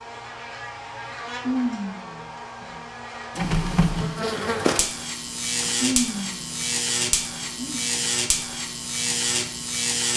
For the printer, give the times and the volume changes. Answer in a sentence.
The printer can be heard from 3.4 to 10.1 s, getting quieter.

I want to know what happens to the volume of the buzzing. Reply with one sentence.
The loudness of the buzzing goes up.